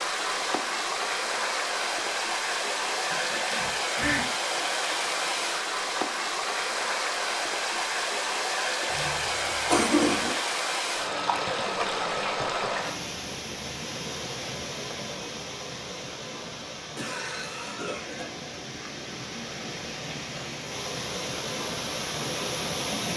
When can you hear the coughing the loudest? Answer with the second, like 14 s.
10 s.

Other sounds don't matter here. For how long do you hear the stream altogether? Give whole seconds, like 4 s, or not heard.
23 s.